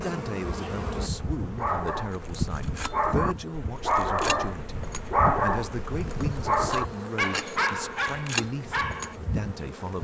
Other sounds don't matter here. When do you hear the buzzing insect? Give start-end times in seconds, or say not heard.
0.0-10.0.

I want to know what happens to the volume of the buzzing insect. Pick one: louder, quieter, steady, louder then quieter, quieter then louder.
steady.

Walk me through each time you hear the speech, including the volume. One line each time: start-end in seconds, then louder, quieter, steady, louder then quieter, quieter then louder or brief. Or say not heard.
0.0-10.0 steady.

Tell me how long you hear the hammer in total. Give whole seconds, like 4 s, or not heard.
not heard.